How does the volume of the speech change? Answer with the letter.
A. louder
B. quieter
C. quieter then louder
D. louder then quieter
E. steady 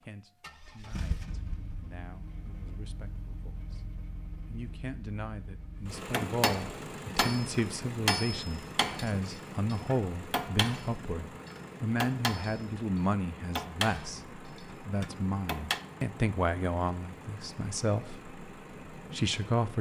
A.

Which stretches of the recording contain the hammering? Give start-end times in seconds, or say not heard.
6.1-15.8.